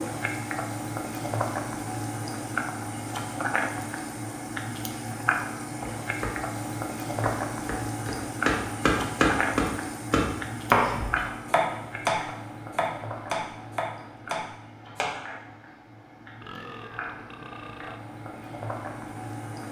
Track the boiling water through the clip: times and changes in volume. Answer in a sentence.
You can hear the boiling water from 0.0 to 19.6 s, getting quieter.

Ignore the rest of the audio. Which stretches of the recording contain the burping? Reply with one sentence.
You can hear the burping from 16.4 to 18.0 s.